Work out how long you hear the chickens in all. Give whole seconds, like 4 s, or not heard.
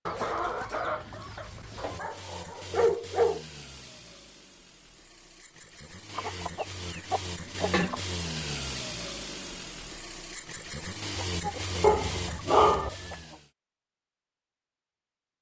6 s.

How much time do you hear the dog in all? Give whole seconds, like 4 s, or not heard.
3 s.